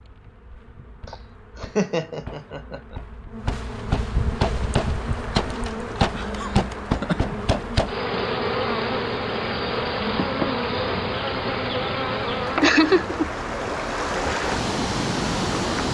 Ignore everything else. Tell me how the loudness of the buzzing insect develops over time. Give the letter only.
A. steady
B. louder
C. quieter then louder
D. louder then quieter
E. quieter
B.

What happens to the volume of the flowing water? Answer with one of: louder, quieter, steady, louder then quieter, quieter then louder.
louder.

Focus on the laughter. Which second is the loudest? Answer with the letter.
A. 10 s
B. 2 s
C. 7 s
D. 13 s
D.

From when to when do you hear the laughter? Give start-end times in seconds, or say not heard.
1.1-3.0, 6.3-7.3, 12.6-13.2.